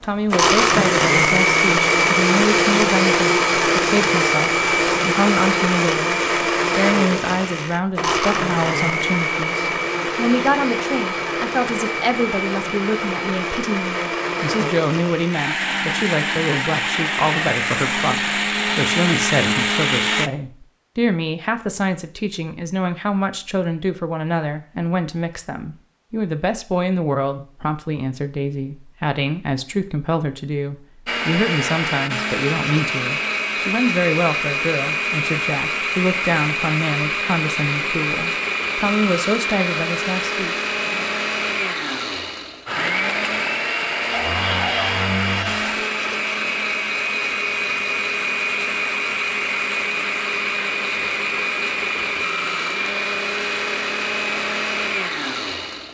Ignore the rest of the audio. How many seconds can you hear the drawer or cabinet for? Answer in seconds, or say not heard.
2 s.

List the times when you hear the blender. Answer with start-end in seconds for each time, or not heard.
0.0-20.3, 31.1-55.8.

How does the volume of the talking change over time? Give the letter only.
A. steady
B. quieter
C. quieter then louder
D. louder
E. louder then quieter
A.